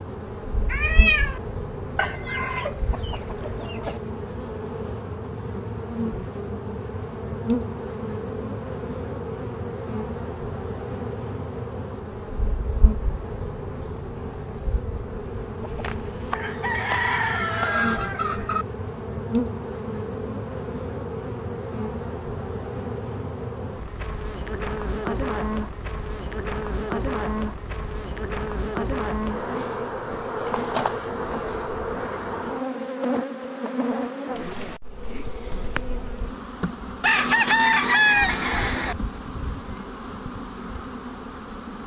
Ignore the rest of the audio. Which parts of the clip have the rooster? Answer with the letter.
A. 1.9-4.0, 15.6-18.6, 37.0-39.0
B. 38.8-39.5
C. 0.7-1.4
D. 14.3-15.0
A.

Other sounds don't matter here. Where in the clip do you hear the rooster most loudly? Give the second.
38 s.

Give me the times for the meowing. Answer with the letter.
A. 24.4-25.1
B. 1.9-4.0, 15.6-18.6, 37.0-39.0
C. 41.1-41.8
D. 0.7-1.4
D.